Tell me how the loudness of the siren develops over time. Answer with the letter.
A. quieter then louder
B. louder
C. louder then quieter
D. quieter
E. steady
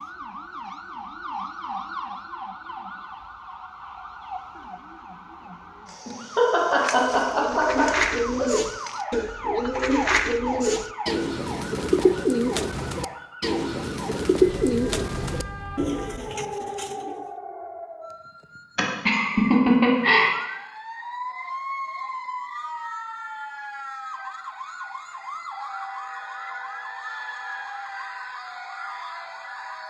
E.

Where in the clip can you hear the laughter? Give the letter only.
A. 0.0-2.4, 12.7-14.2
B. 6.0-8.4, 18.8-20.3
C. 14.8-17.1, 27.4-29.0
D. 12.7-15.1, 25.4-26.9
B.